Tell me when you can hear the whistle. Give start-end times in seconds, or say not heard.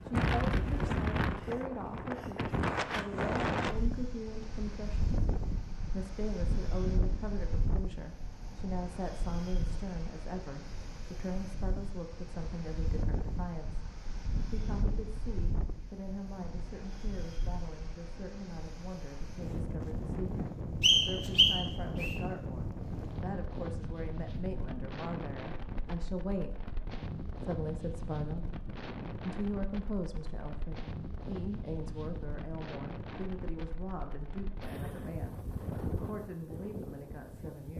20.8-22.1.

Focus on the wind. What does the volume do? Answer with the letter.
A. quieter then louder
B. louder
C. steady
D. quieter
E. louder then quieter
D.